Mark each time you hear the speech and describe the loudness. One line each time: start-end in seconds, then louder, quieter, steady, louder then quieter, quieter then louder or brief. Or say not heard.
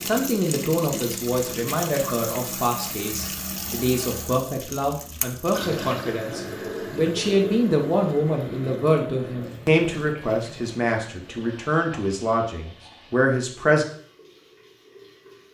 0.0-13.8 steady.